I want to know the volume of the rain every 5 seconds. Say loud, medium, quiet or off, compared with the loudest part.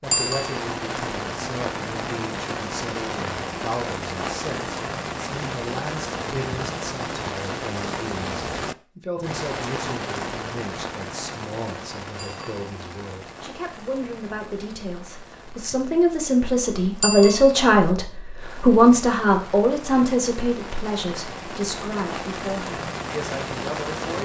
loud, loud, medium, quiet, loud.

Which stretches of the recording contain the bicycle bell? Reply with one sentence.
The bicycle bell can be heard from 0.1 to 0.6 s, from 12.2 to 12.6 s and from 17.0 to 17.5 s.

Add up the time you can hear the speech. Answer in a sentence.
You can hear the speech for 24 seconds altogether.